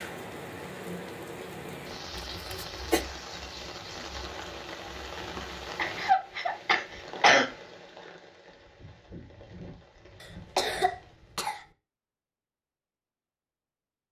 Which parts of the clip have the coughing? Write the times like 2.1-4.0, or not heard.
2.1-3.0, 5.8-7.5, 10.6-11.6.